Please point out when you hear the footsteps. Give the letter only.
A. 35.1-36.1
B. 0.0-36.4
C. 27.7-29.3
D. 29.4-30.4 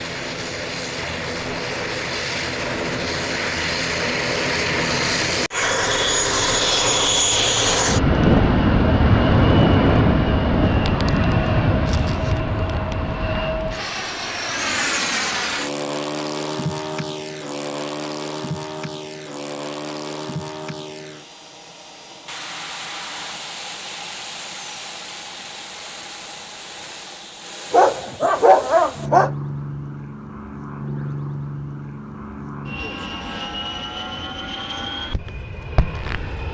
A.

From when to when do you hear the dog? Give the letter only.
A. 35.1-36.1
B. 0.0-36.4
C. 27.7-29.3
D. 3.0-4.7
C.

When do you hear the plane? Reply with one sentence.
The plane can be heard from 0.0 to 36.4 s.